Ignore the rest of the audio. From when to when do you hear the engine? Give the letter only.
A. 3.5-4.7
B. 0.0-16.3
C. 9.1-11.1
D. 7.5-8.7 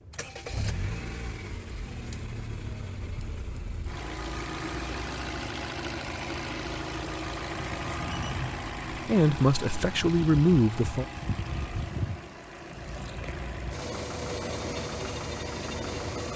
B.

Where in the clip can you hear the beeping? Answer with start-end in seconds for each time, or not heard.
7.5-8.7.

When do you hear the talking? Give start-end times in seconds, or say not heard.
9.1-11.1.